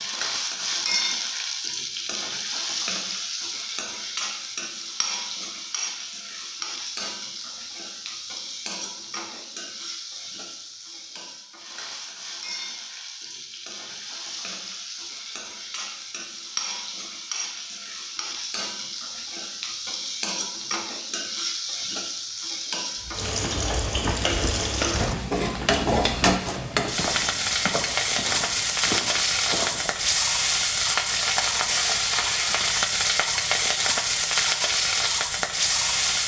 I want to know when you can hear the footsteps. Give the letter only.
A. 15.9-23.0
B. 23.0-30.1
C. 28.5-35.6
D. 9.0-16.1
B.